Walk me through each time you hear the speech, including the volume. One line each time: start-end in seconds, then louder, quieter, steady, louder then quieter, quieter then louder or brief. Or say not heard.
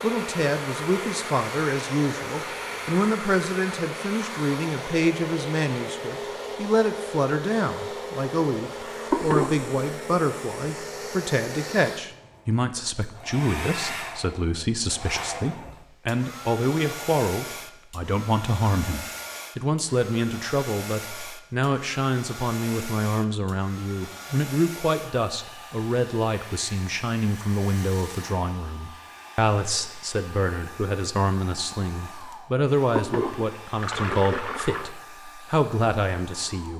0.0-36.7 steady.